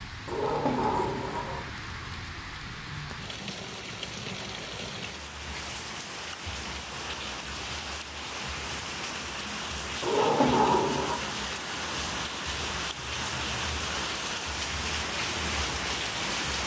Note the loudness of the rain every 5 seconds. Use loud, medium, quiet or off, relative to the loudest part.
medium, medium, loud, loud.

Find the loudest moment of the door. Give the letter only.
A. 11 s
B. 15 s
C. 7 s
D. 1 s
A.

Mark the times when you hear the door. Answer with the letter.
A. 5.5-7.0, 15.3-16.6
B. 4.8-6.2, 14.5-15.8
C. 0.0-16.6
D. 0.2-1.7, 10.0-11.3
D.